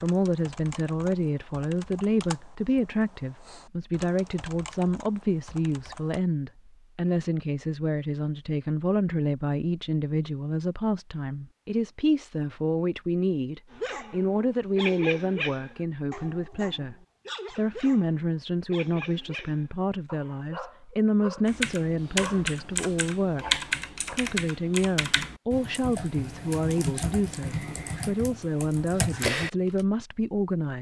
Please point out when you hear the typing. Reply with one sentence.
The typing can be heard from 0.0 to 6.2 s and from 21.4 to 29.9 s.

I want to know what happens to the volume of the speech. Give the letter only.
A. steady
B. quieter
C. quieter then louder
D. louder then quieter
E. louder
A.